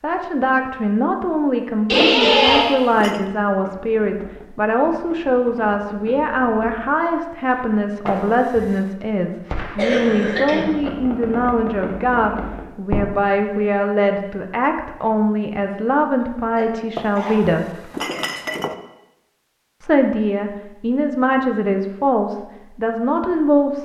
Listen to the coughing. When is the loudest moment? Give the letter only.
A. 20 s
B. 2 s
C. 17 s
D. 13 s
B.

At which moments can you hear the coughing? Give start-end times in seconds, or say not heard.
1.9-2.7, 9.8-10.7, 16.1-17.5.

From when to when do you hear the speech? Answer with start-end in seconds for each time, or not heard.
0.0-17.9, 19.8-23.7.